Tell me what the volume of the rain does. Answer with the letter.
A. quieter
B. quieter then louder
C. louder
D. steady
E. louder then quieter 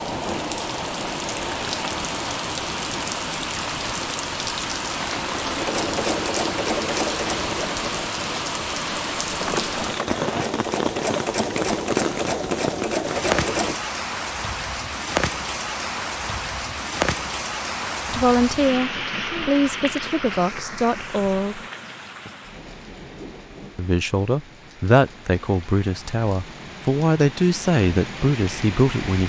A.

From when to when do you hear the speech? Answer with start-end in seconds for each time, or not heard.
18.1-21.6, 23.8-29.2.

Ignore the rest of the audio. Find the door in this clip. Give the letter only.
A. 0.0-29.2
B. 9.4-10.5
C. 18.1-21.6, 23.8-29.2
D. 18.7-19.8
B.